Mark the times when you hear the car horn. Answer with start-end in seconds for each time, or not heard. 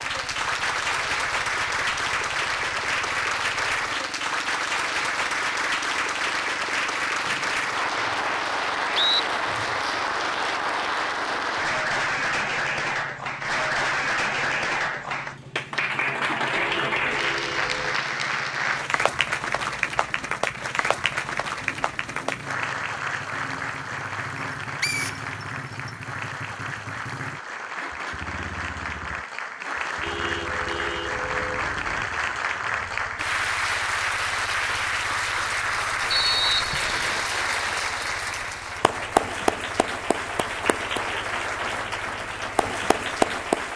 16.5-17.9, 30.0-32.0.